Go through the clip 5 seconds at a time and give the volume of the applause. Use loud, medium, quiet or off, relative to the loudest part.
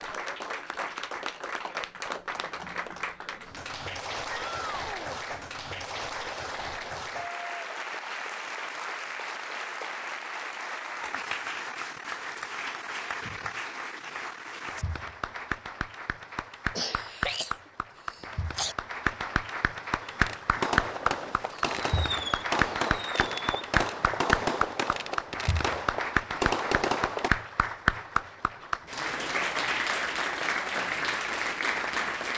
medium, medium, medium, medium, loud, loud, loud.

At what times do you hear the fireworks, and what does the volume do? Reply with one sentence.
You can hear the fireworks from 20.0 to 27.3 s, at a steady volume.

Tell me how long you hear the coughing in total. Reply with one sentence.
The coughing can be heard for 2 seconds in total.